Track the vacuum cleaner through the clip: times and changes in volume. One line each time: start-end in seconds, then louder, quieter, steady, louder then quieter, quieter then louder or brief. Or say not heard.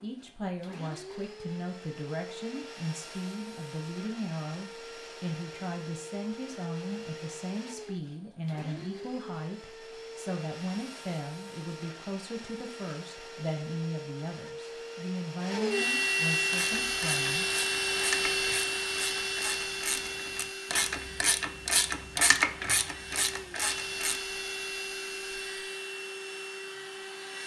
0.0-27.4 louder then quieter.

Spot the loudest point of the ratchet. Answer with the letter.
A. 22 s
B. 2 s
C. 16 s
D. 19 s
A.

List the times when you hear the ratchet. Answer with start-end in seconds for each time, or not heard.
16.5-24.2.